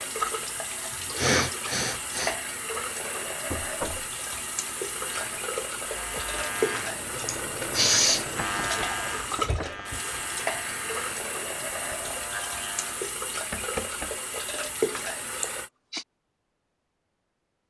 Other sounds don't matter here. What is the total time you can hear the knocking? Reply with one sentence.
You can hear the knocking for 3 seconds altogether.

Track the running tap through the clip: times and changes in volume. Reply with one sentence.
The running tap can be heard from 0.0 to 15.7 s, at a steady volume.